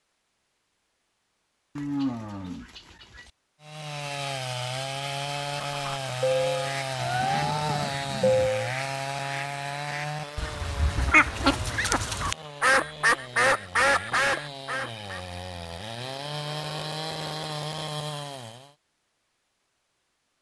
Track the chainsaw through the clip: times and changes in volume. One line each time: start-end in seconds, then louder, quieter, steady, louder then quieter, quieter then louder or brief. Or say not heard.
3.6-18.7 quieter then louder.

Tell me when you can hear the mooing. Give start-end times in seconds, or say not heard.
1.8-3.3, 7.0-8.5, 16.1-17.6.